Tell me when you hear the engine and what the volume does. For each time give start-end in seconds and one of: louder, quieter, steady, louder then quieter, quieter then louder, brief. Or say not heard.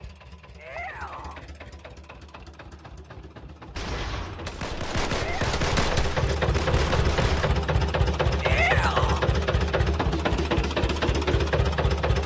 0.0-12.2 louder.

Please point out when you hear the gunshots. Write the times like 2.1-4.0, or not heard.
3.8-7.5.